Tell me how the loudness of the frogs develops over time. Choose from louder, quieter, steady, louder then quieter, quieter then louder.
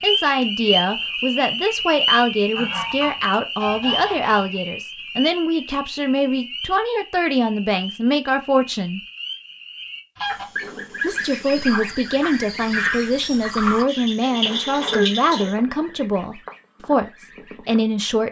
quieter then louder.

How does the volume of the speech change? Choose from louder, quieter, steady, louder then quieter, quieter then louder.
steady.